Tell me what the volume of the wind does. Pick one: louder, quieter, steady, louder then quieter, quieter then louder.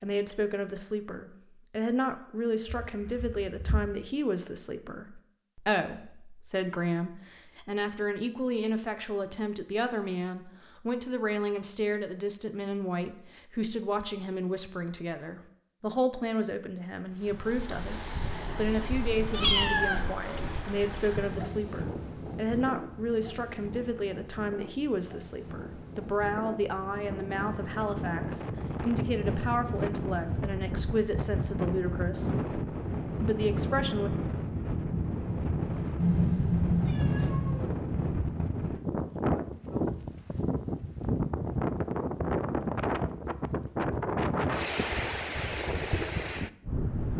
louder.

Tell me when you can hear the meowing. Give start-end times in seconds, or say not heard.
2.6-3.9, 19.3-20.1, 36.0-37.8.